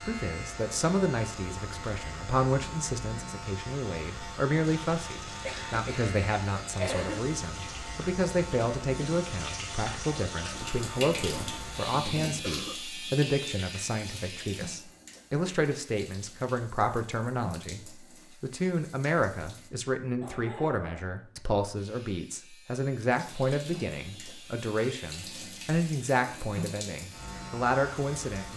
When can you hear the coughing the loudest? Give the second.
7 s.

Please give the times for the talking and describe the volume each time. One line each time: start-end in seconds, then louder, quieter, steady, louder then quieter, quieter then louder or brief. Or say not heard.
0.0-28.5 steady.